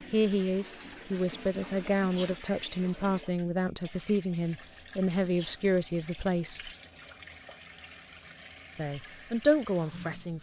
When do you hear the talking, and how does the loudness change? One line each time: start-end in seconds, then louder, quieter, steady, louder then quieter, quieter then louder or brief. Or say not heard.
0.1-6.7 steady
8.8-10.3 brief.